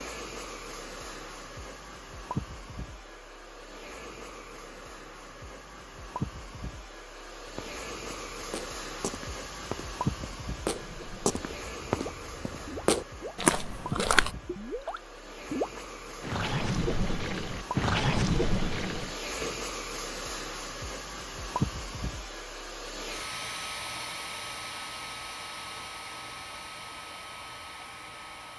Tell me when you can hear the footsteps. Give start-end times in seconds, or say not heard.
7.4-14.3.